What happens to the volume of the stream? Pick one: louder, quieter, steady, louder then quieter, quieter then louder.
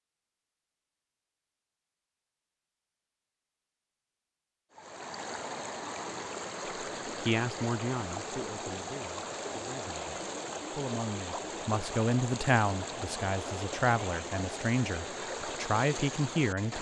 steady.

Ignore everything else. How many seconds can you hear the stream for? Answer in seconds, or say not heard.
12 s.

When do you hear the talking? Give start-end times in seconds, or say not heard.
7.2-16.7.